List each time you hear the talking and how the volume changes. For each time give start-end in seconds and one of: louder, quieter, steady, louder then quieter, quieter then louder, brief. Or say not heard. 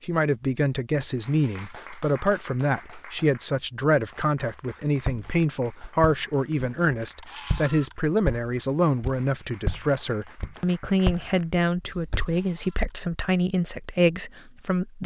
0.0-15.0 steady.